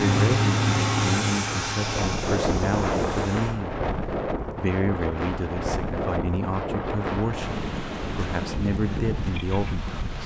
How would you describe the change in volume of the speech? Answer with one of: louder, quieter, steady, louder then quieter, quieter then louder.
steady.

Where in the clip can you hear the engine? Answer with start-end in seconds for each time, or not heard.
0.0-3.5.